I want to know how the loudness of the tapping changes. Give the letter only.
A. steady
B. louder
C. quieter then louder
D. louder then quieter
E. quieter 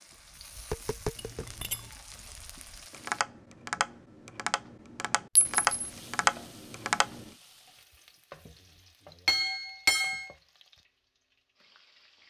B.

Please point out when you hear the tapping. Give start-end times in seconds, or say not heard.
0.3-7.2.